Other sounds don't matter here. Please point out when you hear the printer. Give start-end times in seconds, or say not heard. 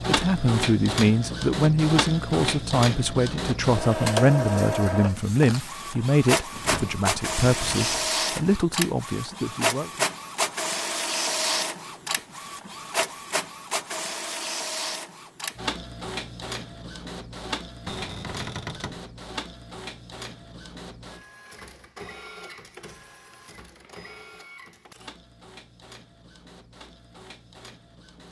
0.0-28.2.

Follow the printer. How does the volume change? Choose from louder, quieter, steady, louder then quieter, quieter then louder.
quieter.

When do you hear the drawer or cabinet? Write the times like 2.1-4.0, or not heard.
6.5-8.1, 17.9-19.0.